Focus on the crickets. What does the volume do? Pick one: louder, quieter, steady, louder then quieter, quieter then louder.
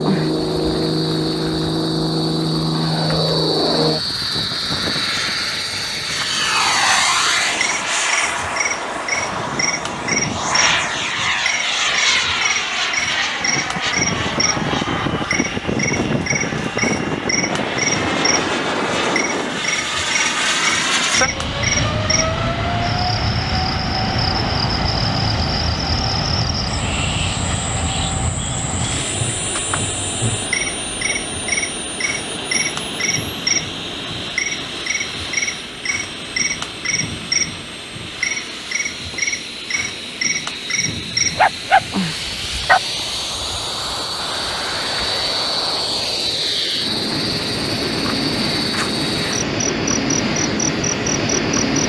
steady.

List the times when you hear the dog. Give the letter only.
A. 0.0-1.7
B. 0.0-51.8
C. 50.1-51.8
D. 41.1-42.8
D.